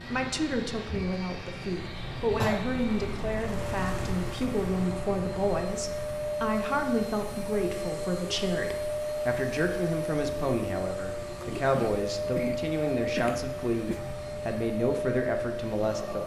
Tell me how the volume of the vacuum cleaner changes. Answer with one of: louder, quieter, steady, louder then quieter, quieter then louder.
louder.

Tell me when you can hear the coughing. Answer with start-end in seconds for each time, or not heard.
2.4-2.8, 11.4-14.0.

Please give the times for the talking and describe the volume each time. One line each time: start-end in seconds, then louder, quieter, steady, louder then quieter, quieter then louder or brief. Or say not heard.
0.0-16.2 steady.